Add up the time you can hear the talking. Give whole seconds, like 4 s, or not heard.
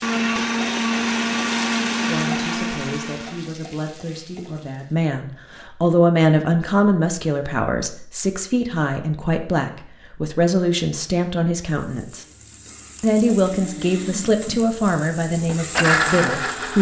14 s.